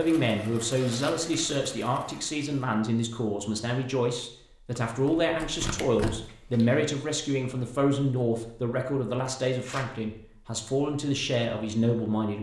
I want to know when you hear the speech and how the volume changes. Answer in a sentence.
The speech can be heard from 0.0 to 12.3 s, at a steady volume.